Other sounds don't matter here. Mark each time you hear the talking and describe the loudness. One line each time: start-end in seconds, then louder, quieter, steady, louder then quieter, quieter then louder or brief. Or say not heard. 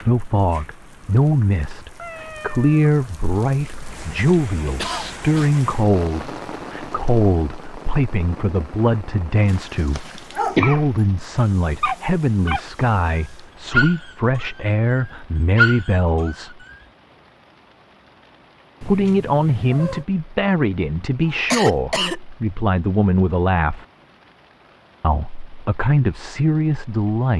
0.0-16.6 steady
18.8-23.9 quieter then louder
25.0-27.3 brief.